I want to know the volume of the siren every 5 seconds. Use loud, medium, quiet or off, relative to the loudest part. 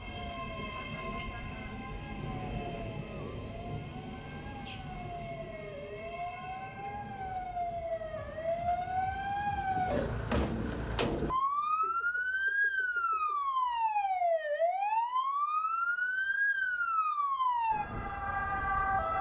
quiet, medium, loud, loud.